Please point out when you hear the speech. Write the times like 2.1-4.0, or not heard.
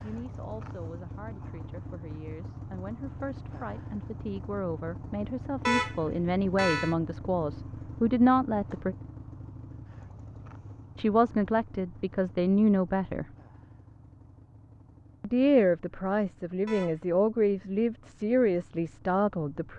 0.0-8.9, 10.9-13.2, 15.2-19.7.